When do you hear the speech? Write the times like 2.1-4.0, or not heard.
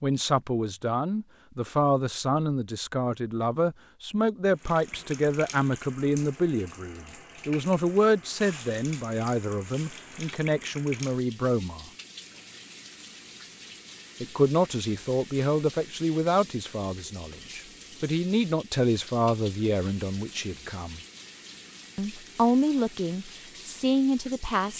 0.0-11.8, 14.2-21.0, 21.9-24.7.